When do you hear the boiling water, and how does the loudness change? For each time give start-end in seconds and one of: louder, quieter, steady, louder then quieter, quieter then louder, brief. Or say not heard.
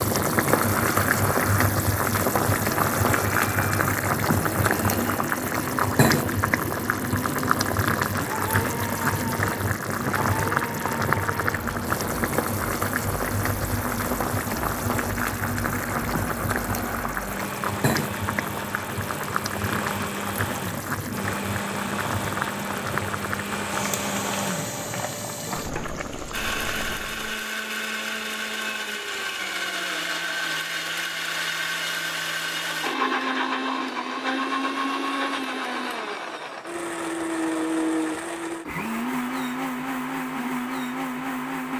0.0-27.4 quieter.